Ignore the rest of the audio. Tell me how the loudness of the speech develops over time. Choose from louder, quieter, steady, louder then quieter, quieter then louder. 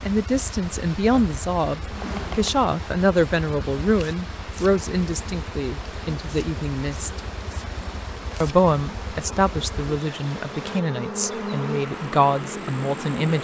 steady.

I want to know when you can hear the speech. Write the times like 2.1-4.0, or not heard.
0.0-7.2, 8.4-13.3.